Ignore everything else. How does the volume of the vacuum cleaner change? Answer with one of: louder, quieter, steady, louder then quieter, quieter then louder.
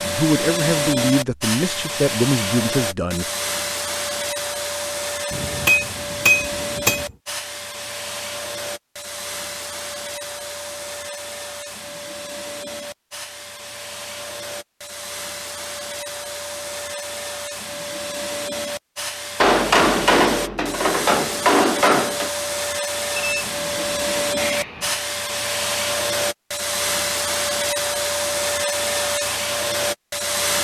quieter then louder.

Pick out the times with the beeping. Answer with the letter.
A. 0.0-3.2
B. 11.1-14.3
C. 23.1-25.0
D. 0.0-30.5
C.